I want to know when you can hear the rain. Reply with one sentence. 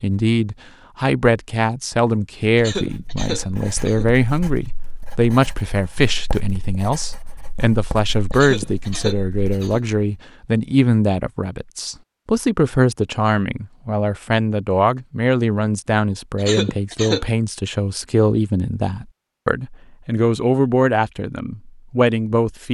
The rain can't be heard in this clip.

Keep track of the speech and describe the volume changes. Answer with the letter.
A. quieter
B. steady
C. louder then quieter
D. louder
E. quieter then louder
B.